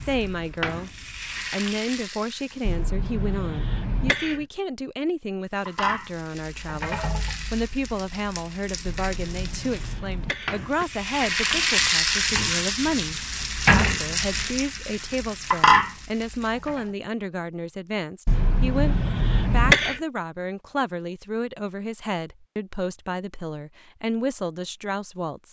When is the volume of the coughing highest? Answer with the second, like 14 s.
20 s.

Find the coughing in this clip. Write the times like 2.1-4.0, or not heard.
2.6-4.5, 8.8-10.8, 18.2-20.0.